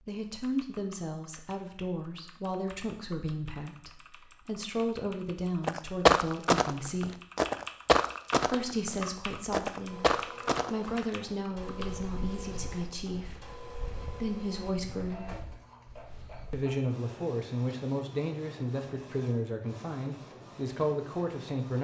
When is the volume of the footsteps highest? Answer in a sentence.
The loudest moment of the footsteps is at 6 seconds.